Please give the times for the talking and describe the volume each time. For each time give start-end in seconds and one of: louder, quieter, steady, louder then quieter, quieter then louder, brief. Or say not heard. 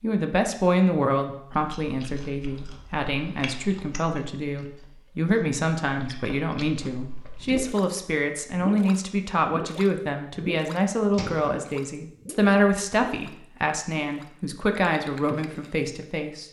0.0-16.4 steady.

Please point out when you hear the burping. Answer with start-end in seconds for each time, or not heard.
not heard.